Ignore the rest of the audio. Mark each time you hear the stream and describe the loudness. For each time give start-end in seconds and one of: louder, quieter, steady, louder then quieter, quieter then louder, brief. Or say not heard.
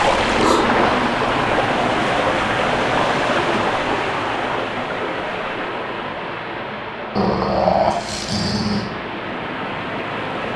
0.0-10.5 quieter.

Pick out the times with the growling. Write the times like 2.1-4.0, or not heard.
0.1-1.1, 7.2-8.9.